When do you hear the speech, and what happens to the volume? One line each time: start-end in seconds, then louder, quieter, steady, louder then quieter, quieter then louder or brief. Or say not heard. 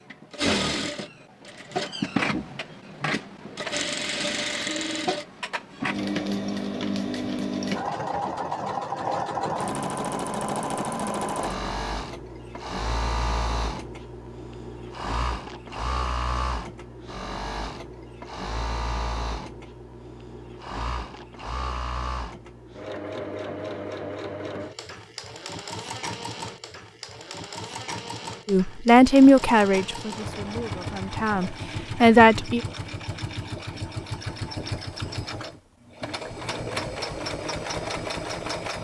28.4-32.6 quieter then louder.